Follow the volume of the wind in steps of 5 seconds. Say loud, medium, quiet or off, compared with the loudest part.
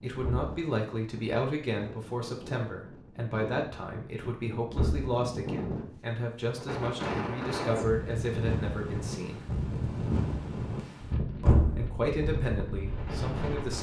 medium, loud, loud.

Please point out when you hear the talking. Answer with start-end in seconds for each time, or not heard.
0.0-9.4, 11.4-13.7.